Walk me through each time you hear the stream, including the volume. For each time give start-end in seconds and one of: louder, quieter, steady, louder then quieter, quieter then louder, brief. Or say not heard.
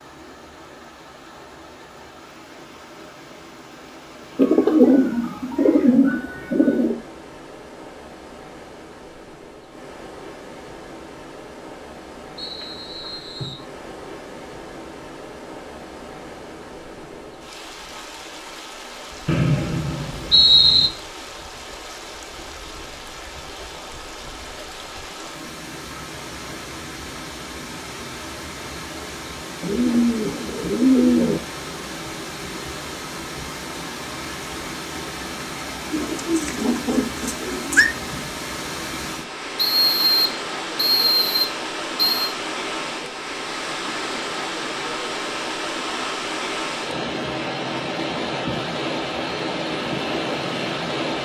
0.0-51.1 louder.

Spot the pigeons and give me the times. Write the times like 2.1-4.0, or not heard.
4.3-7.0, 29.6-31.4, 35.9-37.9.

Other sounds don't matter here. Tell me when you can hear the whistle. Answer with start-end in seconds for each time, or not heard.
12.3-13.7, 19.2-20.9, 39.5-42.3.